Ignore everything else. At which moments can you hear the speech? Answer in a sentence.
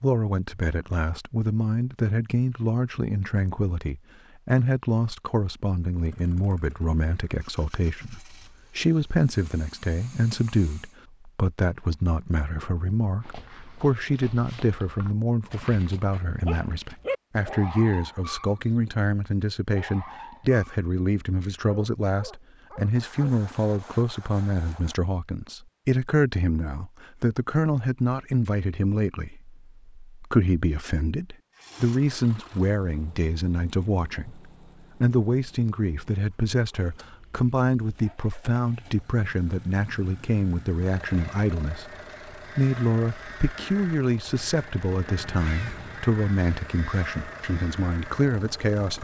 You can hear the speech from 0.0 to 49.0 s.